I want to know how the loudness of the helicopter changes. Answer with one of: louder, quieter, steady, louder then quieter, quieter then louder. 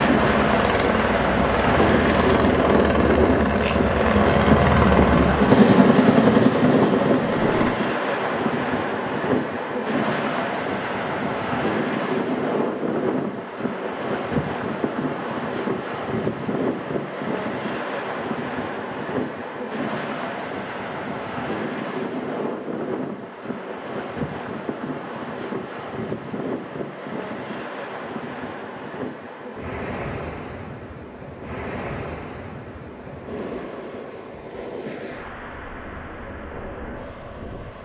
louder.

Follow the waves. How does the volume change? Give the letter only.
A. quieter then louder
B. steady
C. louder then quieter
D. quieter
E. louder
D.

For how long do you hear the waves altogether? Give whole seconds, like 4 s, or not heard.
38 s.